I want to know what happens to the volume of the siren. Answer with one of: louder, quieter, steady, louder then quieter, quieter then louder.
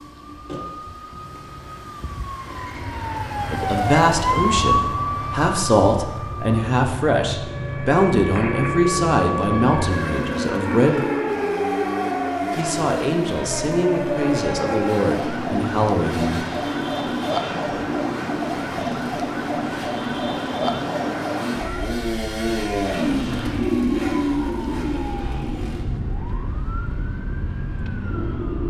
quieter.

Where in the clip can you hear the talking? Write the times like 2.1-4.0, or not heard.
3.5-11.1, 12.6-16.4.